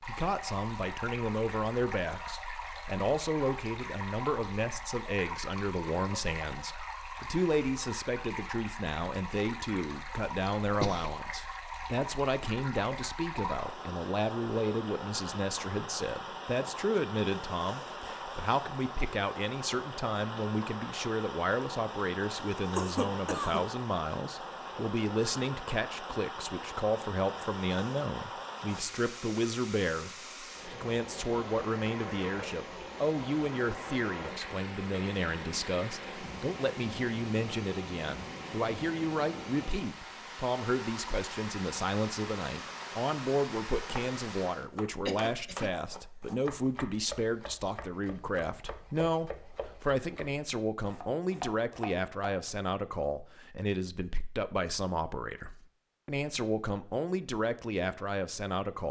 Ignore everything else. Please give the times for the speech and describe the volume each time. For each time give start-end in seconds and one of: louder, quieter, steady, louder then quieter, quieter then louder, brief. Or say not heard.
0.0-58.8 steady.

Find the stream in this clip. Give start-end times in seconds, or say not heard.
0.0-44.6.